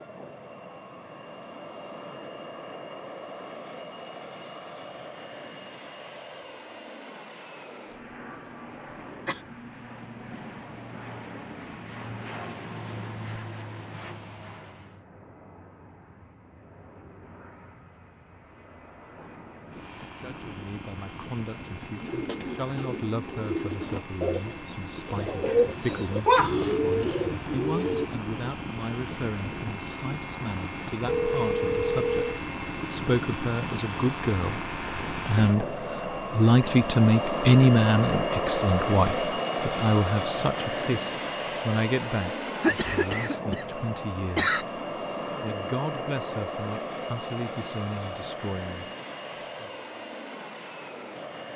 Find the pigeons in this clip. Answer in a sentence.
You can hear the pigeons from 21.9 to 28.1 s.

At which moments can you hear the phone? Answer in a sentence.
The phone can be heard from 31.1 to 32.4 s.